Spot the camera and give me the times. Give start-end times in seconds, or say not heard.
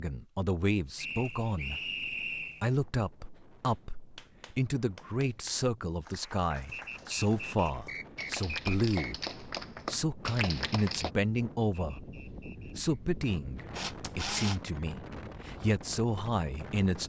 13.7-14.6.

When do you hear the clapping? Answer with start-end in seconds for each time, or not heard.
3.4-11.1.